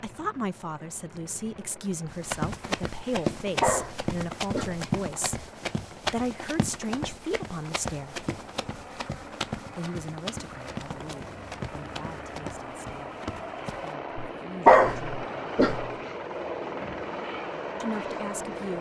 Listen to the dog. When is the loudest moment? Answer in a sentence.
The volume of the dog peaks at 15 seconds.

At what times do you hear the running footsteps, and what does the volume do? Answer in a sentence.
The running footsteps can be heard from 2.0 to 13.9 s, getting quieter.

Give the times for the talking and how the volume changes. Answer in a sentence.
You can hear the talking from 0.0 to 8.2 s, at a steady volume; from 9.8 to 15.4 s, getting quieter then louder; and briefly from 17.8 to 18.7 s.